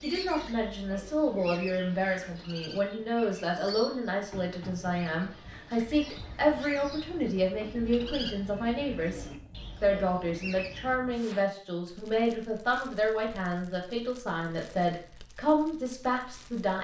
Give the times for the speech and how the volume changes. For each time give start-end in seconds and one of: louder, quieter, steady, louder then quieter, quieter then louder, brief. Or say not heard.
0.0-16.8 steady.